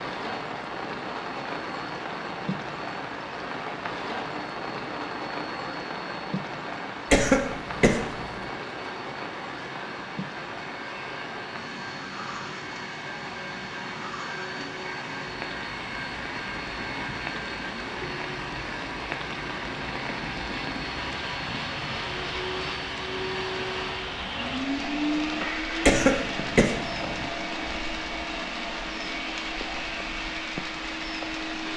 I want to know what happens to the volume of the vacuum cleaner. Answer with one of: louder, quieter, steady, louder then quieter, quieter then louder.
louder.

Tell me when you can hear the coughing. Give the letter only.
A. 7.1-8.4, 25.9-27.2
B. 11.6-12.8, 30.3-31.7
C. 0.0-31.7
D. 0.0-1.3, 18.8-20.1
A.